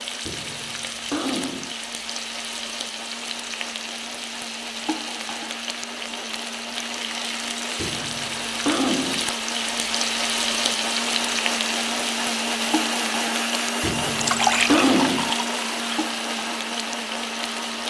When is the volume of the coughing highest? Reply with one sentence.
The volume of the coughing peaks at 15 seconds.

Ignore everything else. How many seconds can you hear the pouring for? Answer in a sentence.
You can hear the pouring for 2 seconds altogether.